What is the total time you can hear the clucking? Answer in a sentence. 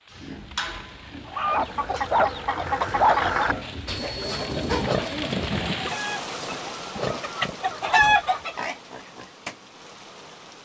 The clucking can be heard for 7 seconds in total.